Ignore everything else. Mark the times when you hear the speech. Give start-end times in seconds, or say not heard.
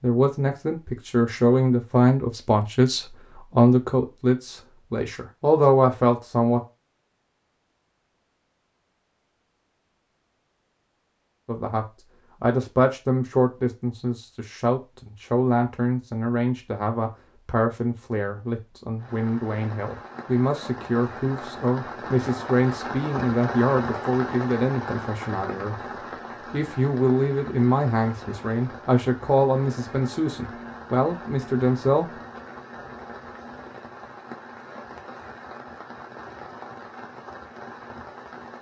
0.0-6.6, 11.4-25.8, 26.5-32.1.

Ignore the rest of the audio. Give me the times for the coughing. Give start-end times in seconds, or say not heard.
not heard.